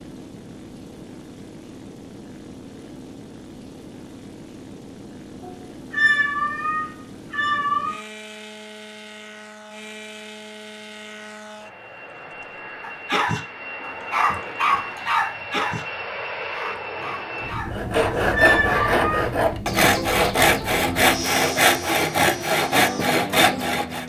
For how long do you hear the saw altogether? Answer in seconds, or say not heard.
6 s.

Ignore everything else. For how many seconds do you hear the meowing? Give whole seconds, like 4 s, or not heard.
3 s.